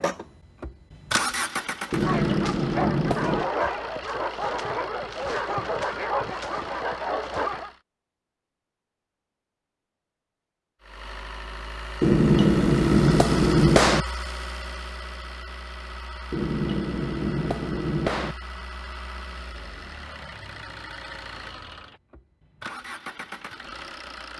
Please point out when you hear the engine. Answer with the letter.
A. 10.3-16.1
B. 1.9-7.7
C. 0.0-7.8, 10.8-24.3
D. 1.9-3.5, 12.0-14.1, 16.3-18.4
C.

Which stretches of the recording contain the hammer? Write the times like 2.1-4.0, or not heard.
1.9-3.5, 12.0-14.1, 16.3-18.4.